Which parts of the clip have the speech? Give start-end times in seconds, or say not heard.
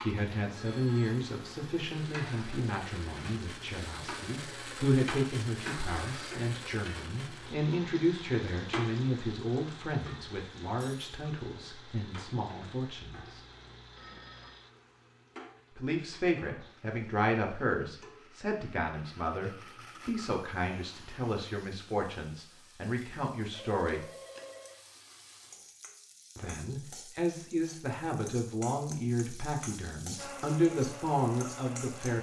0.0-13.4, 15.8-24.1, 26.4-32.1.